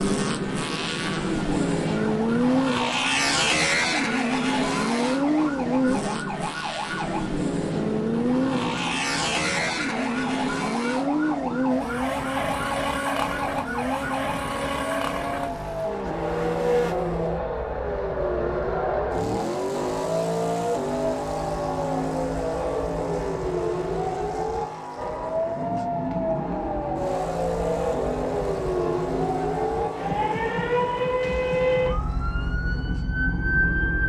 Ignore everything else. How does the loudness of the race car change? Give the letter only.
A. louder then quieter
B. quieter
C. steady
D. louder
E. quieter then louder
B.